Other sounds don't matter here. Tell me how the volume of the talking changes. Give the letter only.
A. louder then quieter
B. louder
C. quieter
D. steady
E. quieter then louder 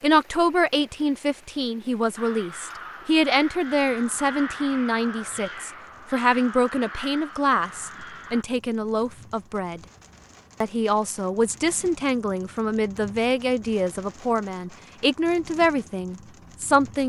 D.